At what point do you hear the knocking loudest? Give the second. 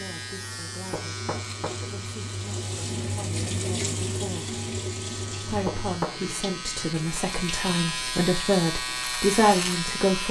6 s.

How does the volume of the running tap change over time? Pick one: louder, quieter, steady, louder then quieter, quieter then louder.
louder then quieter.